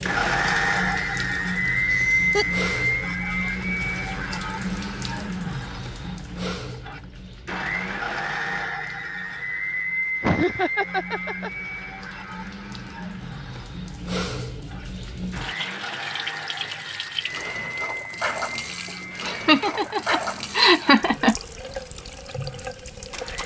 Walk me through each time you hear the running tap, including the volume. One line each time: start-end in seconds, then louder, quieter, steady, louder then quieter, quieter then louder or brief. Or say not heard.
0.0-23.4 quieter then louder.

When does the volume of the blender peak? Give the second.
2 s.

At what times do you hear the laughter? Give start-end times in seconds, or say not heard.
1.6-2.6, 10.2-11.5, 19.2-21.4.